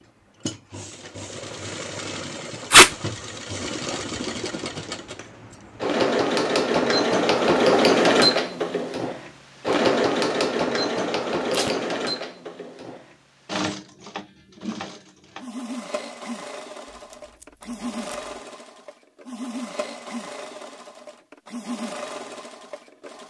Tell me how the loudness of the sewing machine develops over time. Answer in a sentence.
The loudness of the sewing machine goes up, then down.